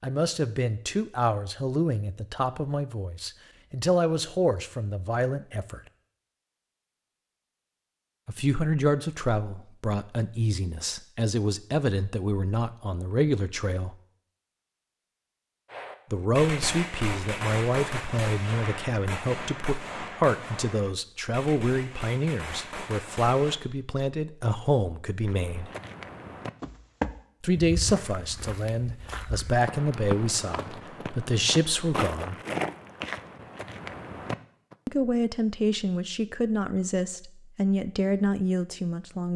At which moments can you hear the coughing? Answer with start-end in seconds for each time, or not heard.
not heard.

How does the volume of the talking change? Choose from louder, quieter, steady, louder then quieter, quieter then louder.
steady.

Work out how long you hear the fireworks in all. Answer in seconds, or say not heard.
8 s.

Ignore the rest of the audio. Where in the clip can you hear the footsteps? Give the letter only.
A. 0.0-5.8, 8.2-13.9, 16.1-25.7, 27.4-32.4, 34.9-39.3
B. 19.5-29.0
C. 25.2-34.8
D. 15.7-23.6
C.